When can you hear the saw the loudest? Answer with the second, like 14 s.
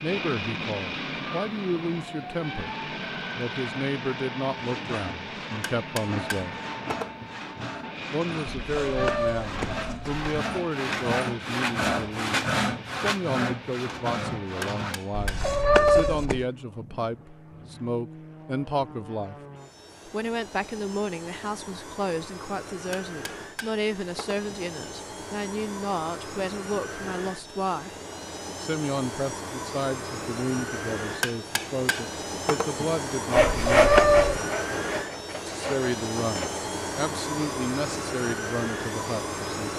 34 s.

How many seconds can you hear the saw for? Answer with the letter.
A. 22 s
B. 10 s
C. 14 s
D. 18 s
C.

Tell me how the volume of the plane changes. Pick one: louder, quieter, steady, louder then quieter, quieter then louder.
quieter then louder.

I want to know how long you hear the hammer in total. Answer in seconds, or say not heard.
6 s.